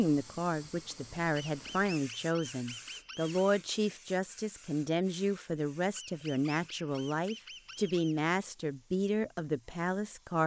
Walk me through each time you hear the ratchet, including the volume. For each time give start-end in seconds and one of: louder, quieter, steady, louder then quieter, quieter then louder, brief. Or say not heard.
not heard.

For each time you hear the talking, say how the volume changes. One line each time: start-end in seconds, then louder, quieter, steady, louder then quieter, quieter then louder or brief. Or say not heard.
0.0-10.4 steady.